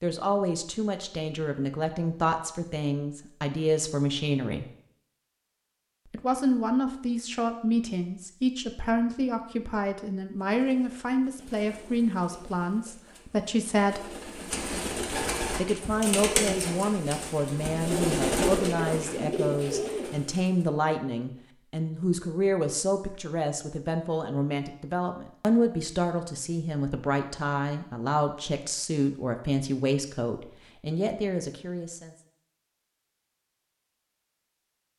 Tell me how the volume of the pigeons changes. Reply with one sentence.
The volume of the pigeons goes up.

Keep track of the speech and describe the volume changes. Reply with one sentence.
The loudness of the speech stays about the same.